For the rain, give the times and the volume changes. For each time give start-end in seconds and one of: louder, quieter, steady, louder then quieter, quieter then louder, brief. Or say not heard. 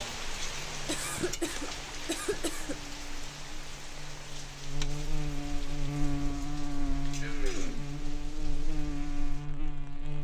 0.0-10.1 quieter.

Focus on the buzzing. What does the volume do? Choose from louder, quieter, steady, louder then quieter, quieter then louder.
louder.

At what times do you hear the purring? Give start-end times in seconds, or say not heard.
not heard.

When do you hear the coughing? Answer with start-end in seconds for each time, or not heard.
0.8-2.8, 7.2-7.8.